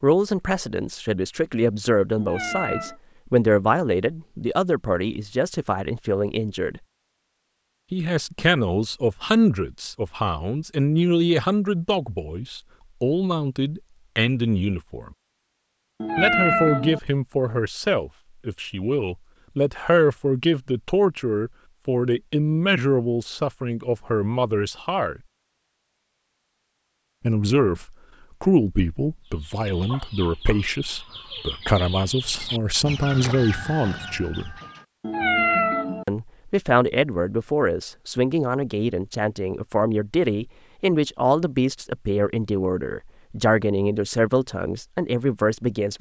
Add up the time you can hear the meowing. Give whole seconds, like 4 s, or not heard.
3 s.